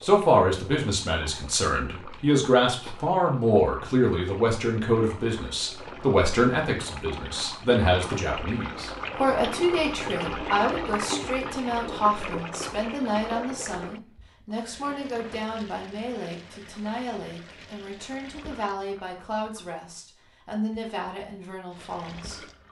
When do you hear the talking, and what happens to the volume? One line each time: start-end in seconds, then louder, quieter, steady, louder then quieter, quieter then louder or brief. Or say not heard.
0.0-22.4 quieter.